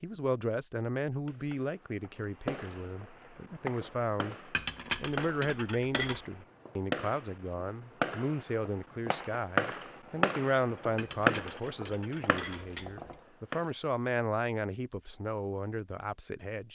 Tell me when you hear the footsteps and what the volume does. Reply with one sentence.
You can't hear the footsteps here.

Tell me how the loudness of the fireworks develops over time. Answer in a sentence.
The volume of the fireworks goes up.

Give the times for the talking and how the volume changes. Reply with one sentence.
The talking can be heard from 0.0 to 16.7 s, at a steady volume.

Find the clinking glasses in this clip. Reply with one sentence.
The clinking glasses can be heard from 4.5 to 6.2 s and from 10.9 to 13.2 s.